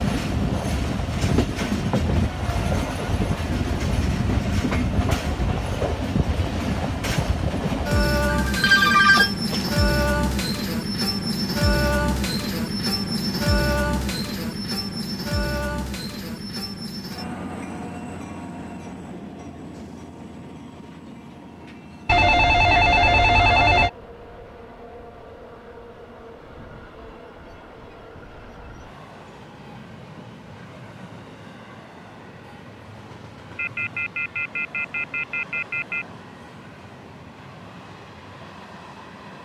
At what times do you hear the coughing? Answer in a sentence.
You can't hear the coughing here.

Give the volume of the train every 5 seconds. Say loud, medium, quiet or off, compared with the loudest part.
loud, loud, loud, medium, quiet, quiet, quiet, quiet.